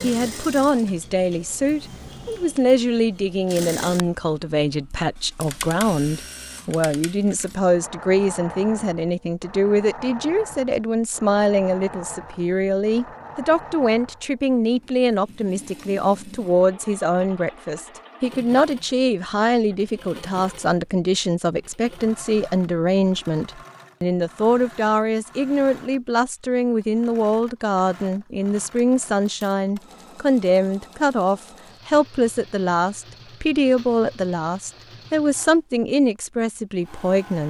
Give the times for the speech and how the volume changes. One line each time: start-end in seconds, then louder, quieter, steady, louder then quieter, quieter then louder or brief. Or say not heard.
0.0-37.4 steady.